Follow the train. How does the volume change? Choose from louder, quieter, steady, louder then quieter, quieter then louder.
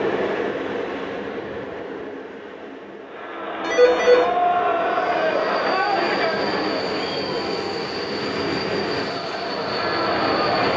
quieter then louder.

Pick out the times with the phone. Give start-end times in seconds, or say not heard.
3.6-4.3.